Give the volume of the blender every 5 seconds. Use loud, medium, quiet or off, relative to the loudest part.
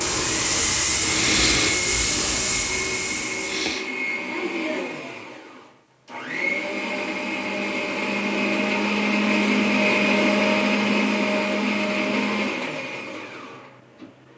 medium, loud, loud.